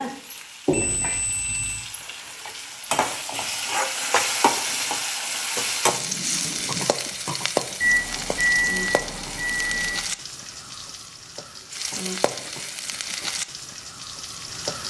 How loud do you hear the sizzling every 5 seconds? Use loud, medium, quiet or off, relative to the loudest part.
loud, loud, medium.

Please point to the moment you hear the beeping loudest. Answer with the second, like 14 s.
9 s.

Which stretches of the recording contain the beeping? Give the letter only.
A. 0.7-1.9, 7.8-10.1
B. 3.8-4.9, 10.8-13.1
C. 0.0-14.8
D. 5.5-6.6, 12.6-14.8
A.